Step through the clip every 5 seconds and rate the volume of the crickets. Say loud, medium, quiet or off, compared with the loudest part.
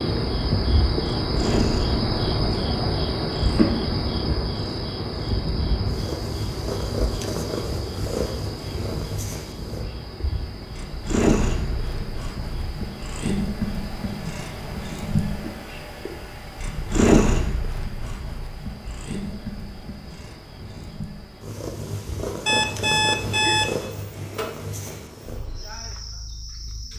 loud, medium, quiet, quiet, quiet, quiet.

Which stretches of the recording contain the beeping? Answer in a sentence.
You can hear the beeping from 22.4 to 23.8 s.